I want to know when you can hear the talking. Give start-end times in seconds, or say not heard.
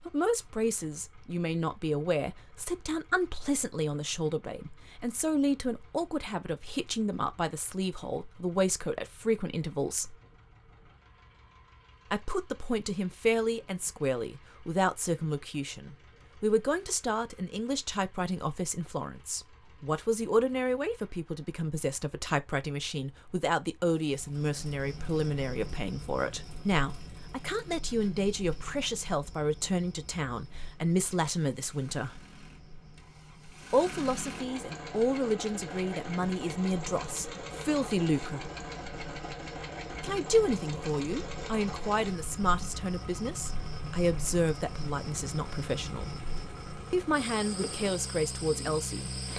0.1-10.2, 12.1-32.2, 33.7-38.5, 40.0-46.1, 46.9-49.1.